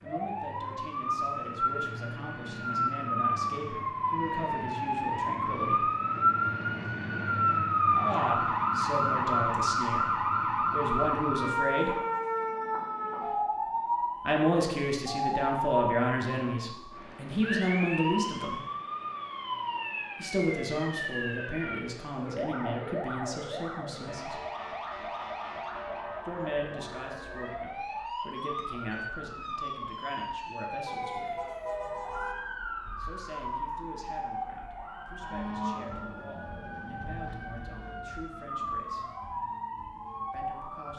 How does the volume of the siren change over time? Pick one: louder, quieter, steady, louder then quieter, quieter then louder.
quieter.